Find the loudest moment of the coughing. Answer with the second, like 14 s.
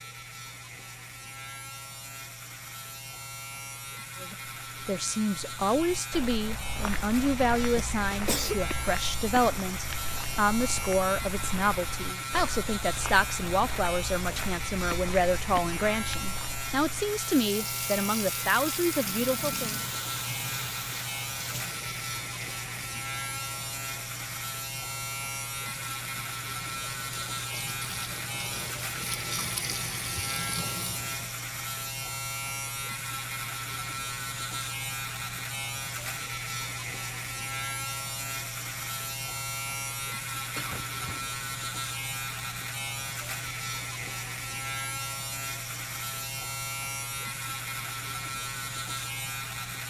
8 s.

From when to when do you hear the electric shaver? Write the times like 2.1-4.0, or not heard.
0.0-49.8.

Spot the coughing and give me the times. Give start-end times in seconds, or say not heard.
7.8-8.6, 40.5-41.3.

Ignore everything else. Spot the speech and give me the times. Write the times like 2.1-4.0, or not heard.
4.2-19.8.